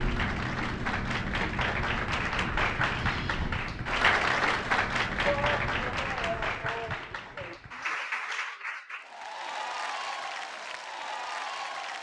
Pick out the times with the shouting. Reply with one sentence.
You can hear the shouting from 5.2 to 7.6 s.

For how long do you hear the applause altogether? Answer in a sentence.
The applause can be heard for 12 seconds in total.